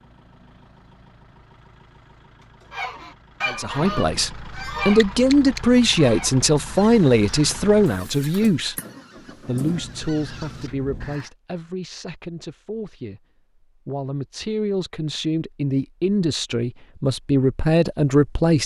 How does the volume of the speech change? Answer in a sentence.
The volume of the speech goes down, then up.